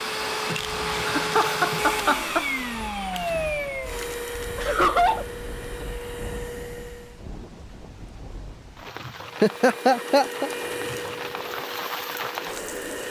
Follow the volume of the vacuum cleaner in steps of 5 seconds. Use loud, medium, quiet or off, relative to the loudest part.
loud, medium, medium.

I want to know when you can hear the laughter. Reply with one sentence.
The laughter can be heard from 1.1 to 2.5 s, from 4.5 to 5.2 s and from 9.4 to 10.5 s.